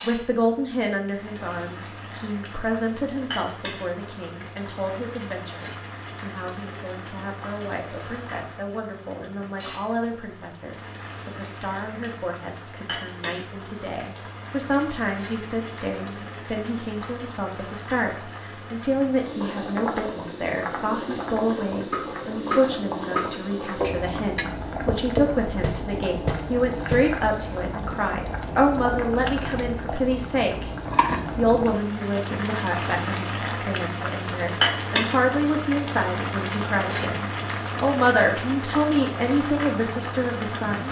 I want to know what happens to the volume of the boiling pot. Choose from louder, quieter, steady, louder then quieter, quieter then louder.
louder.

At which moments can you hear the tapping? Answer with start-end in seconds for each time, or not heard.
19.6-27.1.